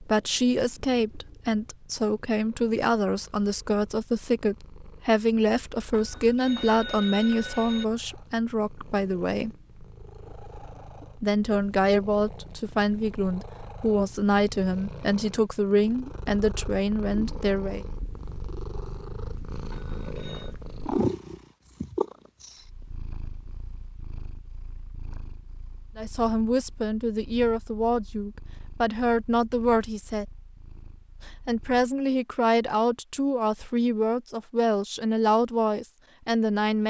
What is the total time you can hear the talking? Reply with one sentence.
The talking can be heard for 26 seconds in total.